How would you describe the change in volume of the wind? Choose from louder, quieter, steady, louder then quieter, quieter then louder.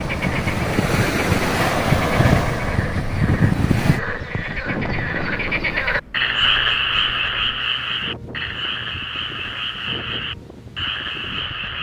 quieter.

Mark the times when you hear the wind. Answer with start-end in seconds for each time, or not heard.
0.0-11.7.